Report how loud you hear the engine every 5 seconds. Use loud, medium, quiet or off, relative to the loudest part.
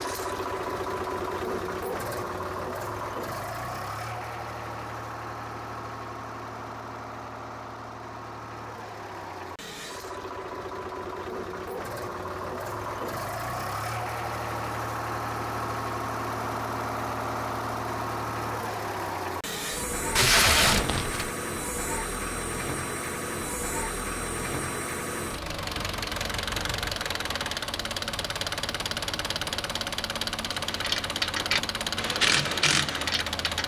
loud, medium, loud, loud, loud, loud, loud.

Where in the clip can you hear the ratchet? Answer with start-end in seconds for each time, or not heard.
30.5-33.6.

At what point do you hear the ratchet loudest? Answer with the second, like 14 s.
32 s.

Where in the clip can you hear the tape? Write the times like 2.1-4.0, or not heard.
20.1-21.3.